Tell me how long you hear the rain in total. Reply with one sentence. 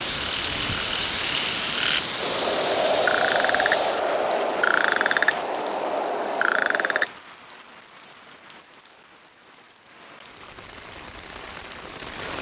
You can hear the rain for 12 seconds altogether.